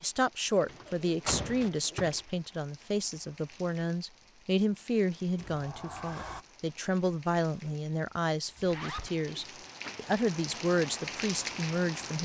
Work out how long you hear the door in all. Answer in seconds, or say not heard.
4 s.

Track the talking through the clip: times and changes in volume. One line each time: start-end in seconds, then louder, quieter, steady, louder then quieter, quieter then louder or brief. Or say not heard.
0.0-12.2 steady.